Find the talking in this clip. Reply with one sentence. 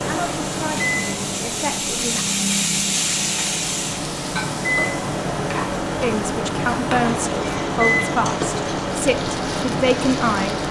The talking can be heard from 0.0 to 2.2 s and from 6.0 to 10.6 s.